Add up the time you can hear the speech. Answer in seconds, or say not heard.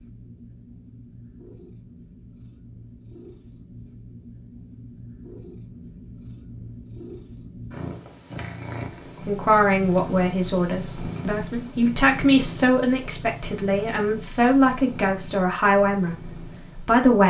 8 s.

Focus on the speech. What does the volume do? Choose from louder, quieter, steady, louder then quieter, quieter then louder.
steady.